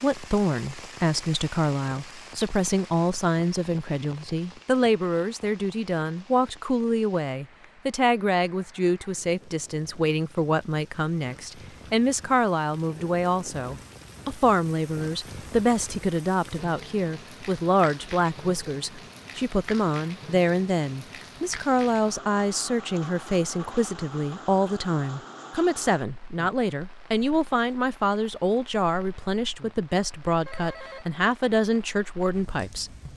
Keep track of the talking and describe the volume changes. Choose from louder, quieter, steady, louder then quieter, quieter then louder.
steady.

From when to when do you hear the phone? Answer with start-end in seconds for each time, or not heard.
30.4-31.1.